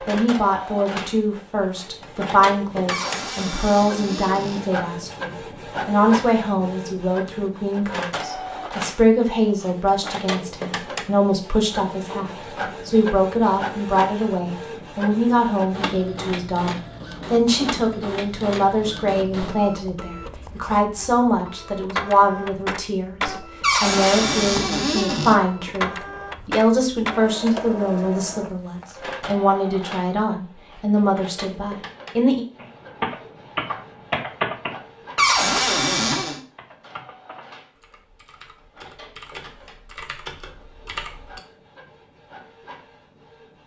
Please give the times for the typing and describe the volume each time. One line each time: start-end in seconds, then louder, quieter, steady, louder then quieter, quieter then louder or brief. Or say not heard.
32.5-41.4 quieter then louder.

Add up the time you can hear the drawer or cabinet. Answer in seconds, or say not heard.
5 s.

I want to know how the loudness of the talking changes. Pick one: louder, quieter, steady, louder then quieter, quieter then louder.
steady.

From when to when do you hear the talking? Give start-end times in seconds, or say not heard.
0.1-32.5.